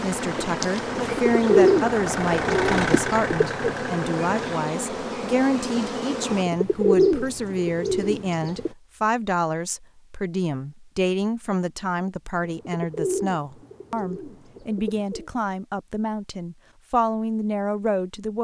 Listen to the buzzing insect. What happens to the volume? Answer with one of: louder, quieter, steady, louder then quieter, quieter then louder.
steady.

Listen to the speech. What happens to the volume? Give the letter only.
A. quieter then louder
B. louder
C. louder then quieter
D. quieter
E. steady
E.